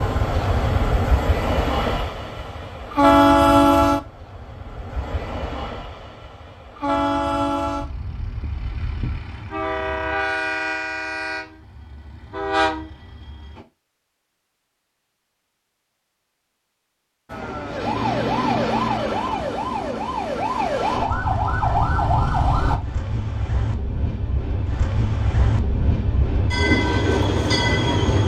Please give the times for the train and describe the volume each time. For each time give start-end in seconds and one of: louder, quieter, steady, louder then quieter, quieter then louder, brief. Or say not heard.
0.0-13.7 louder then quieter
17.3-28.2 louder.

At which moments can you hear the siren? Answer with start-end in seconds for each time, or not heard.
17.2-22.8.